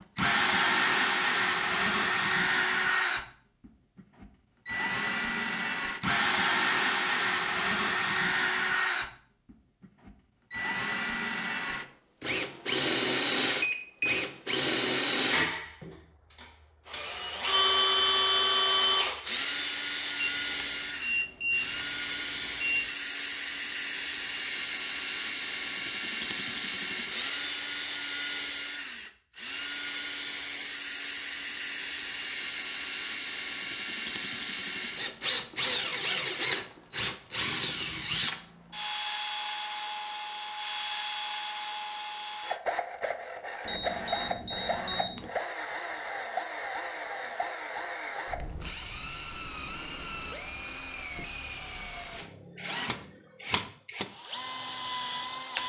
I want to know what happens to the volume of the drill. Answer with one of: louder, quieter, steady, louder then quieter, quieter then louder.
quieter.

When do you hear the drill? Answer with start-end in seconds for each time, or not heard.
0.1-55.6.